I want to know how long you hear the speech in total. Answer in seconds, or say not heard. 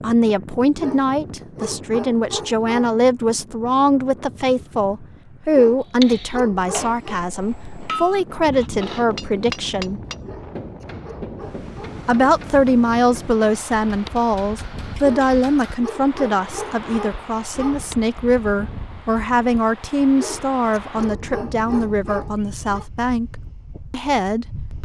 23 s.